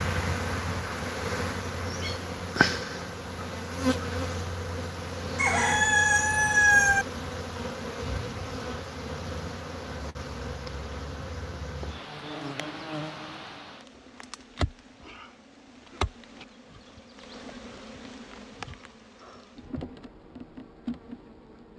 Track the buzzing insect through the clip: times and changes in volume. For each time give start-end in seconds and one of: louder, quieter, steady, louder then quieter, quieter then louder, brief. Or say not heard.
0.0-21.7 quieter.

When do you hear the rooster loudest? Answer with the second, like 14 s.
7 s.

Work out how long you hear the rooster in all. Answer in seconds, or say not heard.
2 s.